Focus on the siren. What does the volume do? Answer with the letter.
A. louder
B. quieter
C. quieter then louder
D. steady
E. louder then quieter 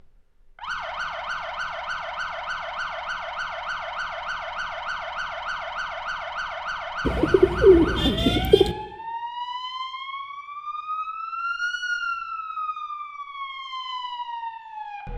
D.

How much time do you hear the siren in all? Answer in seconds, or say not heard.
15 s.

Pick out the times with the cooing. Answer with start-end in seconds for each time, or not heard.
7.0-8.8.